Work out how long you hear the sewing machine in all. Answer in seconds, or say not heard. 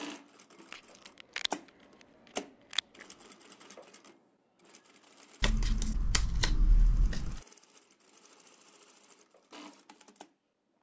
10 s.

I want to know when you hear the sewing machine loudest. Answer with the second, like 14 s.
2 s.